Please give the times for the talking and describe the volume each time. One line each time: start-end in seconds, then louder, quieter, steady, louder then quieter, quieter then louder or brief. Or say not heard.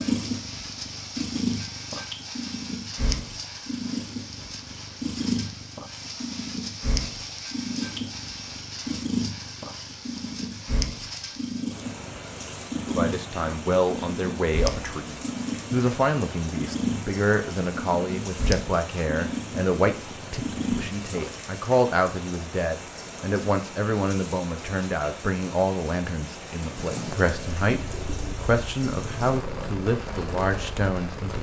12.8-31.3 steady.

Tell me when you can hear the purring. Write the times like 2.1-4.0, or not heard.
0.0-21.4, 26.5-31.3.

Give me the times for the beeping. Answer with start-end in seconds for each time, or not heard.
not heard.